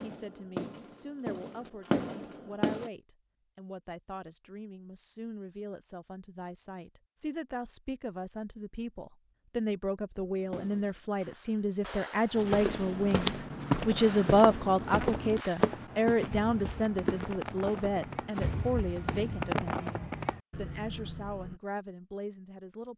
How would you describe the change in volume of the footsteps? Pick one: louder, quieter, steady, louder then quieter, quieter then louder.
quieter.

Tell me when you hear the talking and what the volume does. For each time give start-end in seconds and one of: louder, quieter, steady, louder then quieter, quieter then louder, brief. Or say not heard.
0.0-22.9 louder then quieter.